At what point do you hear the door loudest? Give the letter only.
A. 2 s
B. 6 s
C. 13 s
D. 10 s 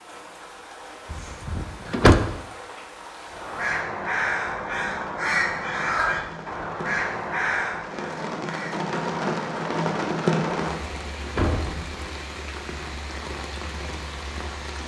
A.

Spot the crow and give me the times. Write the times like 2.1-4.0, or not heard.
3.2-8.8.